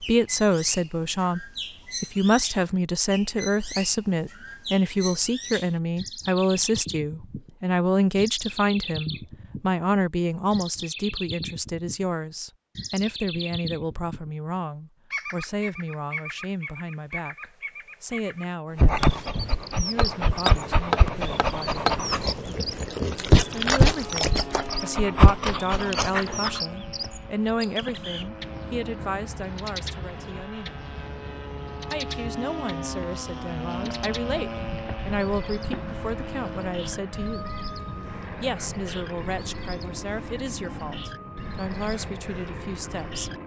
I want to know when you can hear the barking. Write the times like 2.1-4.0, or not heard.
18.8-26.6.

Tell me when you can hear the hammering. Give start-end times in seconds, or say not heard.
19.9-21.9.